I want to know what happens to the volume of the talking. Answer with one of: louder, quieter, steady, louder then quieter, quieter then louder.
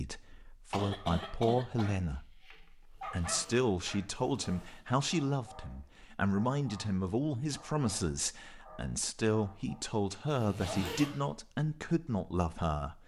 steady.